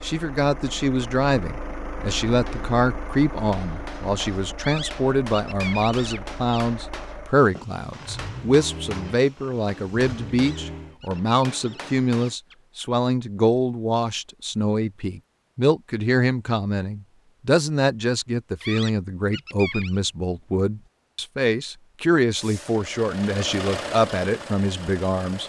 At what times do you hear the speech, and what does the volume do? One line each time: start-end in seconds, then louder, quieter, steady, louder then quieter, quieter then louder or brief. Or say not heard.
0.0-25.4 steady.